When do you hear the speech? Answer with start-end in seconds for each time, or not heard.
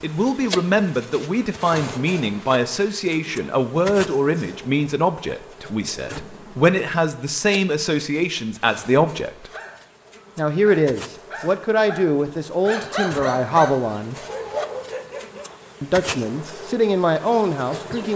0.0-9.5, 10.3-14.2, 15.8-18.1.